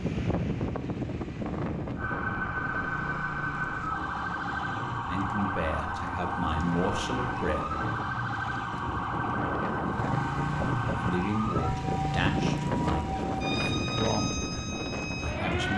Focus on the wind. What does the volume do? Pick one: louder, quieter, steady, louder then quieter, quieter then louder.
quieter then louder.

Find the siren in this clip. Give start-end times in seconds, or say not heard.
1.9-15.7.